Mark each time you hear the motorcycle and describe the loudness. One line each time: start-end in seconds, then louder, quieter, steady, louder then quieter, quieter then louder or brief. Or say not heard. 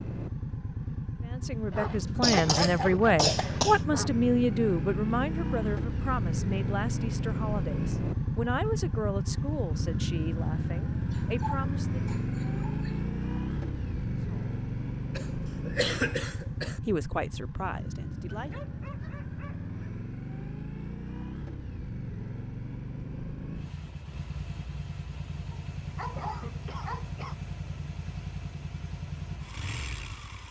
0.0-30.4 quieter.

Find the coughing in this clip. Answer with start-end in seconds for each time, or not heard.
2.2-3.8, 15.2-16.8, 26.1-27.4.